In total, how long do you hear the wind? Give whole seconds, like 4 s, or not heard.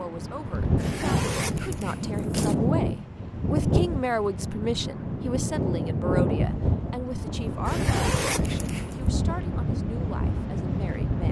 11 s.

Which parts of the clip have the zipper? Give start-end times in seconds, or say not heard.
0.8-2.5, 7.7-9.1.